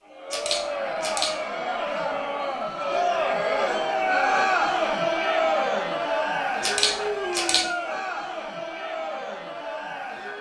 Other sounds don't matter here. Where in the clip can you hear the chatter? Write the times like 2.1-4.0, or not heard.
0.0-10.3.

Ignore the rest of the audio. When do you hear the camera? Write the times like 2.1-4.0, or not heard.
0.3-1.3, 6.6-7.7.